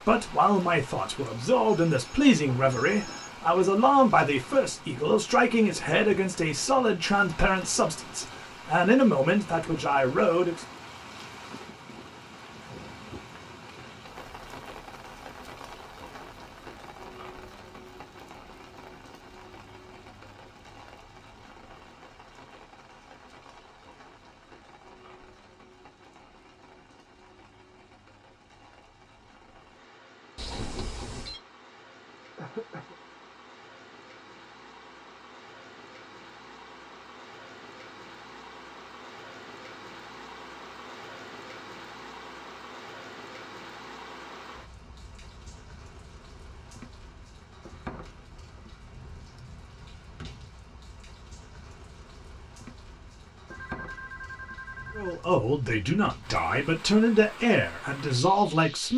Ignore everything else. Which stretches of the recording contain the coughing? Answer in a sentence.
You can hear the coughing from 32.4 to 33.0 s.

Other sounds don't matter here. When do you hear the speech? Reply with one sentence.
You can hear the speech from 0.0 to 10.7 s and from 55.0 to 58.9 s.